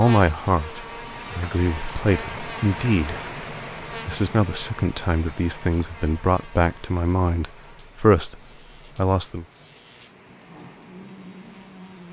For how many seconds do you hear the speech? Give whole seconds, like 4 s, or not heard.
8 s.